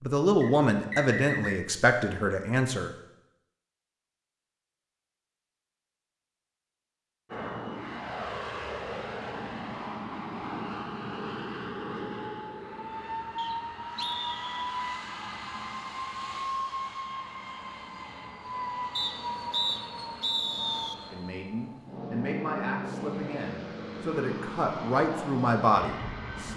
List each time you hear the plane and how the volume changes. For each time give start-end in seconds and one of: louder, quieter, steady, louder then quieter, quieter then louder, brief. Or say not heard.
7.2-26.5 steady.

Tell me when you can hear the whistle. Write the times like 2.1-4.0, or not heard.
0.4-1.6, 13.3-14.8, 18.9-20.9.